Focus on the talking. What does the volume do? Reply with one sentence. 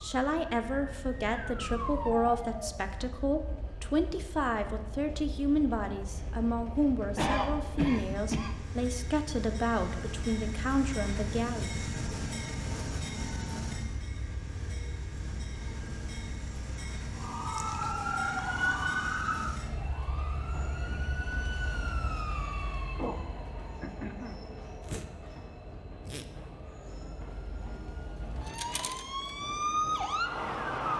The loudness of the talking stays about the same.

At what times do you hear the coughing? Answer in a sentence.
The coughing can be heard from 7.2 to 8.7 s.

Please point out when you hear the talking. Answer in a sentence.
You can hear the talking from 0.0 to 11.7 s.